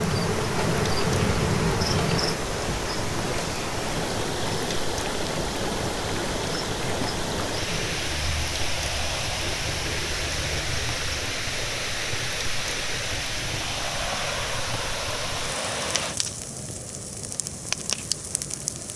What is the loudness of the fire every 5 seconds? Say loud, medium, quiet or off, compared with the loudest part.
medium, medium, medium, loud.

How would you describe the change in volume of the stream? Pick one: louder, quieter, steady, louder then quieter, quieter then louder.
steady.